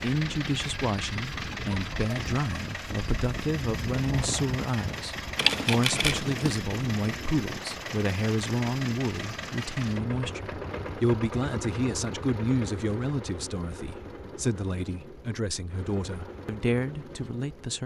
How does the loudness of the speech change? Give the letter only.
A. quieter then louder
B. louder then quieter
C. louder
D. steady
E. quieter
D.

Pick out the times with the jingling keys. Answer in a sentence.
The jingling keys can be heard from 5.3 to 6.6 s.